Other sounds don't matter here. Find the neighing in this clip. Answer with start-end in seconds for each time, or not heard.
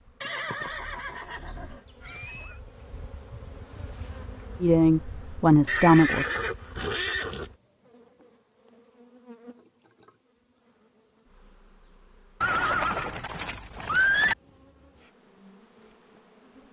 0.2-2.5, 5.7-7.5, 12.4-14.3.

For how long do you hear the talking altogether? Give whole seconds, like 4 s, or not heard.
2 s.